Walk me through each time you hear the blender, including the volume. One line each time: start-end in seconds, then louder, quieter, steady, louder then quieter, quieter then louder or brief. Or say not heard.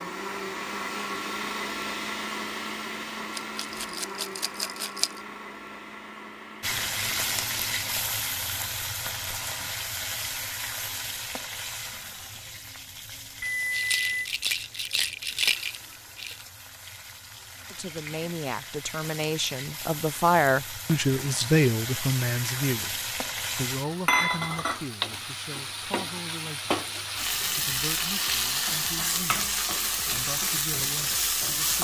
0.0-8.0 quieter.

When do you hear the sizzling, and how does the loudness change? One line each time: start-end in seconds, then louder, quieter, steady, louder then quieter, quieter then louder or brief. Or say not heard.
6.6-31.7 quieter then louder.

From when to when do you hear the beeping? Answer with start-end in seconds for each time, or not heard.
13.4-14.2.